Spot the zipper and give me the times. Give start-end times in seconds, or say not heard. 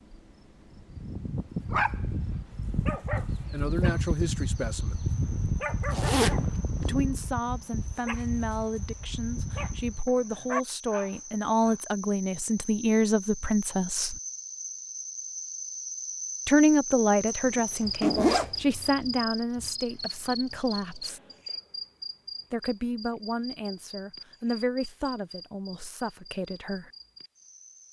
5.9-6.5, 17.5-18.5.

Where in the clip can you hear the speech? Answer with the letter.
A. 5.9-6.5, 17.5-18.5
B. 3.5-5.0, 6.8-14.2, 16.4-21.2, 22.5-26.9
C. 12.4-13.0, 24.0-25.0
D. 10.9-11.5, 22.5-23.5
B.